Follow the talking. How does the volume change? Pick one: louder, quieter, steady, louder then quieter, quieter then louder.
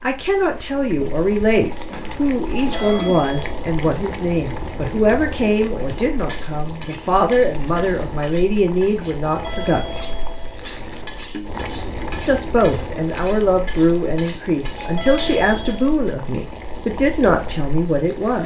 steady.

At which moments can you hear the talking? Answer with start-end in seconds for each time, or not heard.
0.0-9.8, 12.2-18.4.